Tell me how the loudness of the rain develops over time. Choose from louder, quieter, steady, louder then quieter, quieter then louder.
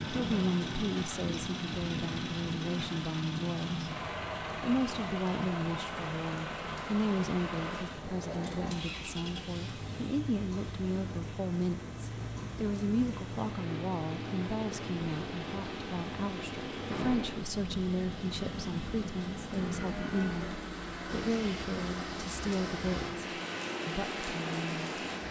louder.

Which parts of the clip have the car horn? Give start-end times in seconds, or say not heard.
not heard.